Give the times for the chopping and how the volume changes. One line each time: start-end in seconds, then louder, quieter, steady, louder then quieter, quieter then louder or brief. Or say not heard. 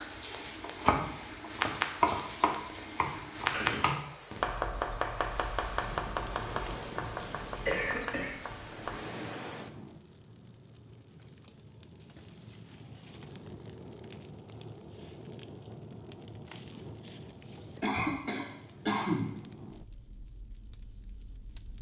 0.3-9.1 quieter.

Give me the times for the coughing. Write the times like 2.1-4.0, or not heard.
3.4-4.4, 7.5-8.3, 17.8-19.4.